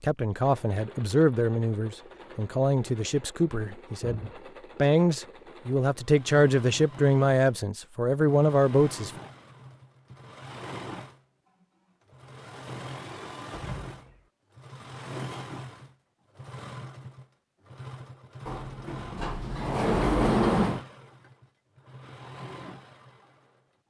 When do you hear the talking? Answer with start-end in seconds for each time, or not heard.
0.0-9.1.